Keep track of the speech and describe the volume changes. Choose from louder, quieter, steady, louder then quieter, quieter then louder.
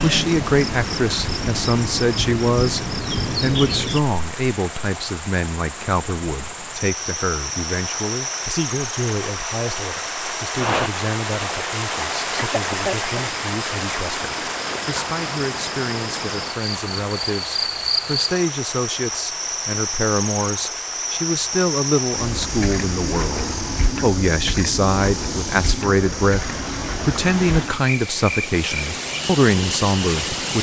quieter then louder.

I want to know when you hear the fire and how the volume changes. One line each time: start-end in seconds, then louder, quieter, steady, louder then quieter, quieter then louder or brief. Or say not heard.
not heard.